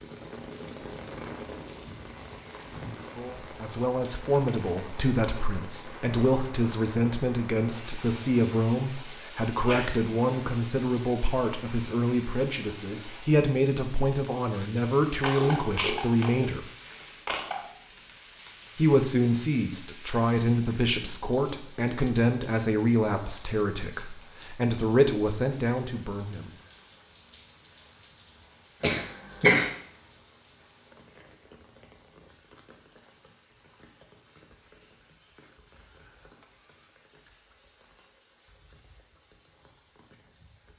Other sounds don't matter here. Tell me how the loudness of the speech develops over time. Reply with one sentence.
The loudness of the speech stays about the same.